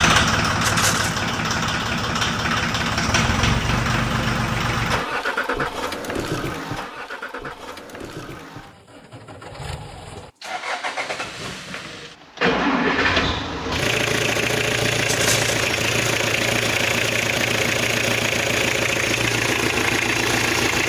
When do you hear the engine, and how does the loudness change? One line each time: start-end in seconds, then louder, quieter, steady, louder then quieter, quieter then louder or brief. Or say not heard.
0.0-20.8 quieter then louder.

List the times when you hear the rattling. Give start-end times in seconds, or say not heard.
0.6-1.2, 15.1-15.6.